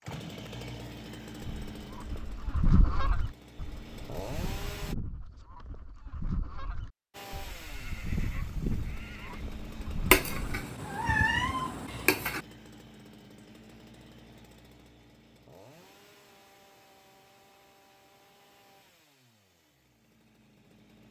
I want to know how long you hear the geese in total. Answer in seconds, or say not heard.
10 s.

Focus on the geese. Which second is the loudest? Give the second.
3 s.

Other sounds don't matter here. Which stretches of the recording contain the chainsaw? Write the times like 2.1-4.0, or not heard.
0.0-5.0, 7.1-21.0.